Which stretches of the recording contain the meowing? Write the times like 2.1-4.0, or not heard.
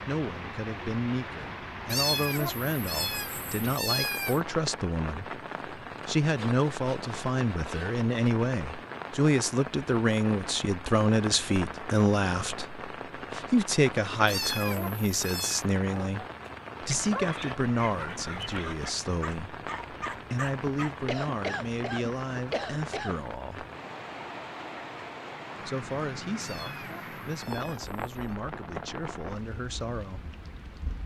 1.9-4.4, 14.2-15.7, 26.4-28.4.